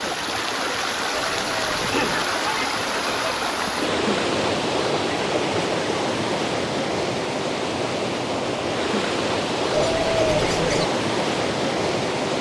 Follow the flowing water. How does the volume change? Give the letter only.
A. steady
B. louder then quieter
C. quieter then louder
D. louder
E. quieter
A.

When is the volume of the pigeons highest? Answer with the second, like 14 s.
10 s.